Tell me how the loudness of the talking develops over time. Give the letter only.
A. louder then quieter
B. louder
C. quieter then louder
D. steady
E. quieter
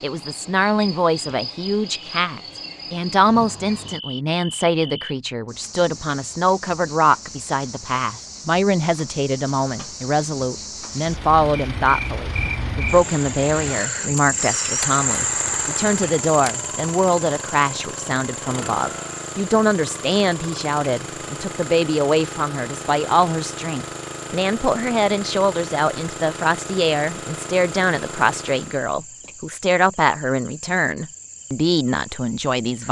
D.